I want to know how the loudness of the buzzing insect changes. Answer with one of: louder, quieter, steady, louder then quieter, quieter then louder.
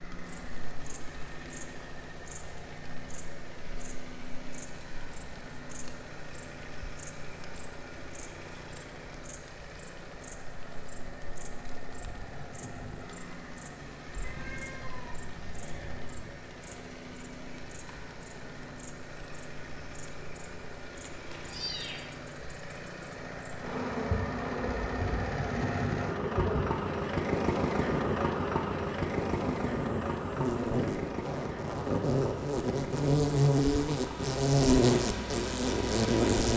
louder.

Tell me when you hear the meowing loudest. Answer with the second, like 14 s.
22 s.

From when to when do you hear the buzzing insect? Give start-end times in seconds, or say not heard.
0.1-36.5.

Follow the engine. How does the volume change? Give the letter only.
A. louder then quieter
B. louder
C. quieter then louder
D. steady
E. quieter
B.